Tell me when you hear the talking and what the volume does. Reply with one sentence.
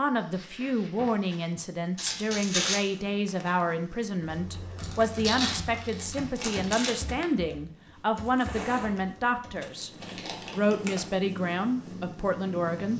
You can hear the talking from 0.0 to 9.9 s, at a steady volume; and briefly from 10.5 to 12.9 s.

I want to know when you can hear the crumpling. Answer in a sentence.
You can hear the crumpling from 1.9 to 2.8 s, from 4.8 to 7.0 s and from 10.0 to 11.1 s.